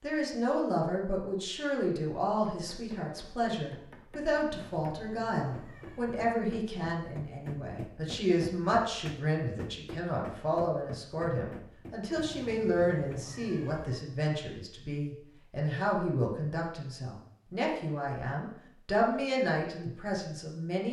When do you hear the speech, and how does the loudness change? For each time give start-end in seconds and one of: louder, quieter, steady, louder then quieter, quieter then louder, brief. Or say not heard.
0.0-20.8 steady.